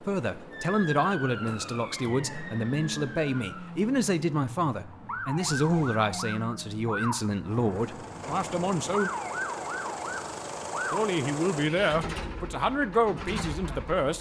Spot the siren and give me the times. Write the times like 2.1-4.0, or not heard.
0.0-11.2.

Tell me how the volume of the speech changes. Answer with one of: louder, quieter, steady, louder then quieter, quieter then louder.
steady.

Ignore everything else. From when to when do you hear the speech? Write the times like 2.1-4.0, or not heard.
0.0-9.1, 10.9-14.1.